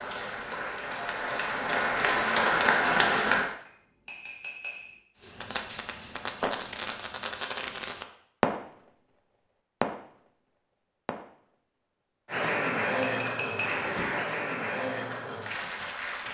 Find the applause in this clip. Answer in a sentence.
You can hear the applause from 0.0 to 3.5 s and from 12.2 to 16.3 s.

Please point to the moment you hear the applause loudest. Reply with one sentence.
The loudest moment of the applause is at 3 seconds.